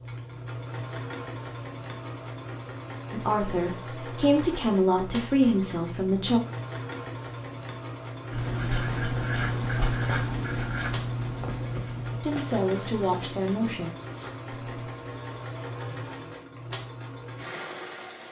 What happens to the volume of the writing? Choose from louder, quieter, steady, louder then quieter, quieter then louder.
quieter.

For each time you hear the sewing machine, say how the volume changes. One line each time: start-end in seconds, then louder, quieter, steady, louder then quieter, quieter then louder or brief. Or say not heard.
0.0-18.2 steady.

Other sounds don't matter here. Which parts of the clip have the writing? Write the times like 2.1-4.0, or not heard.
8.3-14.9.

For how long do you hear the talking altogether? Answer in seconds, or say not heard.
5 s.